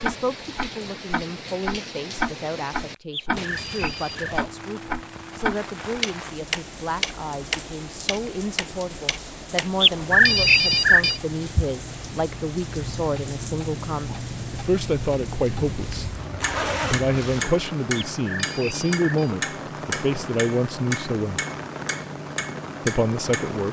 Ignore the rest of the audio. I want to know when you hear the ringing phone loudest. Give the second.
10 s.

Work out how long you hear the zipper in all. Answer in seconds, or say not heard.
2 s.